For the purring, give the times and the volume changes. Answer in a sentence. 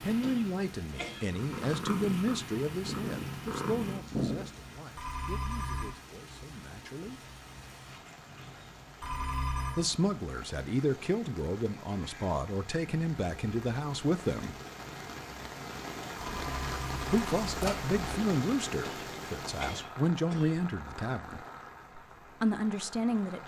The purring can be heard from 0.0 to 4.5 s, getting louder.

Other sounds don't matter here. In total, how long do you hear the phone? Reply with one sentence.
You can hear the phone for 4 seconds altogether.